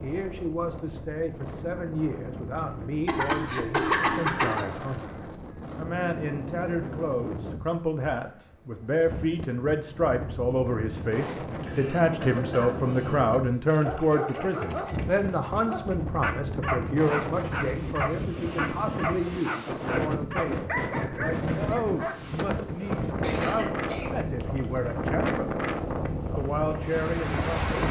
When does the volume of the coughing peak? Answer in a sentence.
The volume of the coughing peaks at 4 seconds.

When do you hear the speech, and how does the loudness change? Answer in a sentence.
You can hear the speech from 0.0 to 25.6 s, getting louder then quieter; and briefly from 26.4 to 27.8 s.